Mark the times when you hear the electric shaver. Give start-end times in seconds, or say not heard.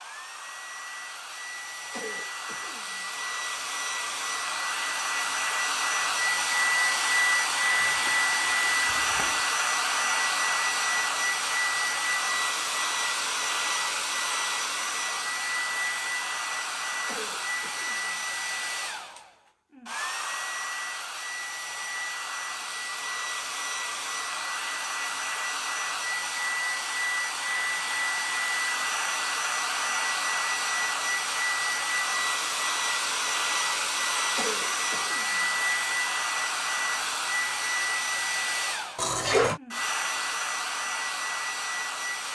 not heard.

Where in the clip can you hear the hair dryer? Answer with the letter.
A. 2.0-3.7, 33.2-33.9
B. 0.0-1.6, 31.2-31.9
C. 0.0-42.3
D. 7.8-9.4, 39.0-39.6
C.